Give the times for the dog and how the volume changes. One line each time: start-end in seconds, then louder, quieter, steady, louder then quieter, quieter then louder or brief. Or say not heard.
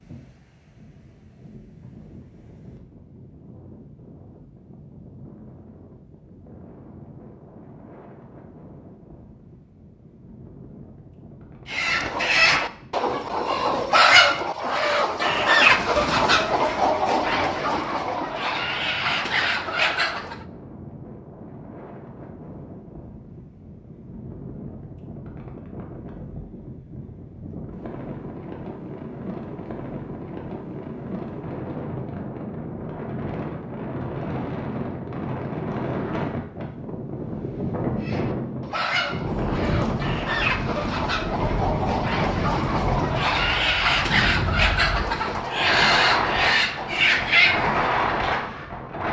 not heard.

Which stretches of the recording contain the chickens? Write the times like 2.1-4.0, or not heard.
11.7-20.4, 38.0-47.9.